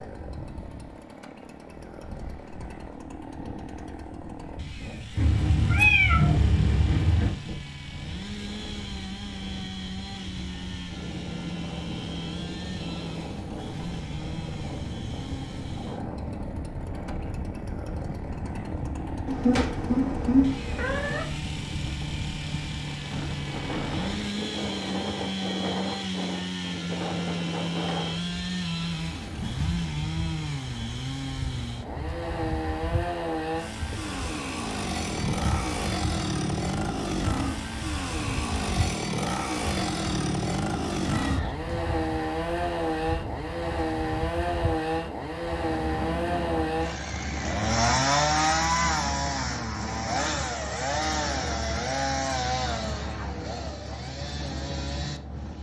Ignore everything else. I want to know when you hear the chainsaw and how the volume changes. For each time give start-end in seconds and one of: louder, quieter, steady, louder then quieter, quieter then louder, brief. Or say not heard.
0.0-55.5 louder.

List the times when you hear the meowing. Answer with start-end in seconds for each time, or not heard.
5.2-7.3, 19.2-21.2, 41.1-41.5.